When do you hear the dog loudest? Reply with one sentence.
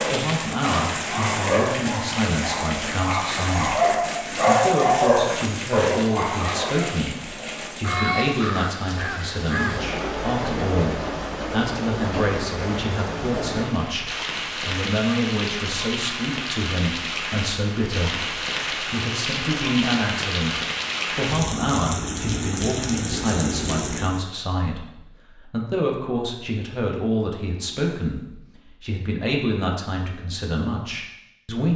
The loudest moment of the dog is at 5 seconds.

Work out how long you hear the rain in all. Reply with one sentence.
You can hear the rain for 24 seconds altogether.